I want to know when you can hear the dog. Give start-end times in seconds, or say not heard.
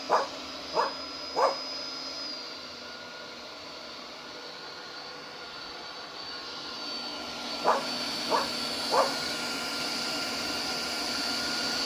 0.1-1.6, 7.6-9.2.